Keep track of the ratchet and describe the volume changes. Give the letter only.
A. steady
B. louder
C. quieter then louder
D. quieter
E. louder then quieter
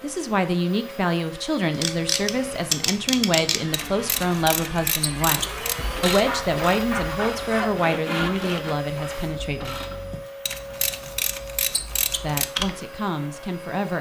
C.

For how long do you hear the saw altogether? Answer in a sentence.
The saw can be heard for 5 seconds in total.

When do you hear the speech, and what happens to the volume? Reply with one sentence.
The speech can be heard from 0.0 to 9.8 s, at a steady volume; and briefly from 12.1 to 13.9 s.